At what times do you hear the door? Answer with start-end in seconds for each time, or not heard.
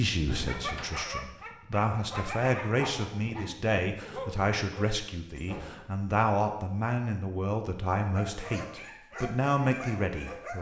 0.2-0.9, 5.3-6.0.